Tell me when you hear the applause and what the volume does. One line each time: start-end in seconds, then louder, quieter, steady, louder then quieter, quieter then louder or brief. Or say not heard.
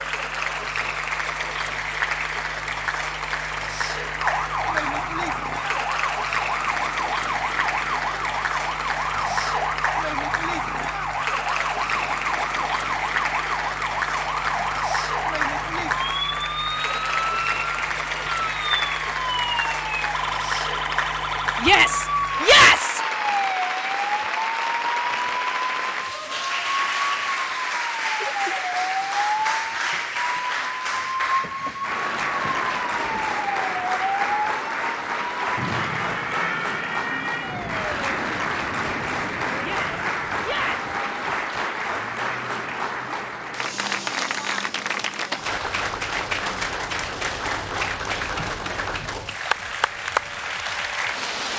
0.0-51.5 steady.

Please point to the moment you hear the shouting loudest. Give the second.
23 s.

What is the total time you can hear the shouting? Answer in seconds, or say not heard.
3 s.